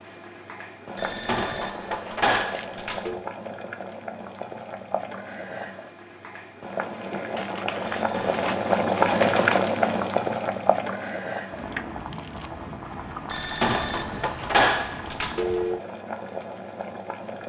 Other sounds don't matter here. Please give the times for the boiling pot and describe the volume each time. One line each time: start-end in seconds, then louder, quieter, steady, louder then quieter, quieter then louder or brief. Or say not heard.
0.0-17.4 louder then quieter.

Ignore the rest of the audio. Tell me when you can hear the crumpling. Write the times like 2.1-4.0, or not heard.
2.4-2.9, 7.3-10.0, 12.0-12.6.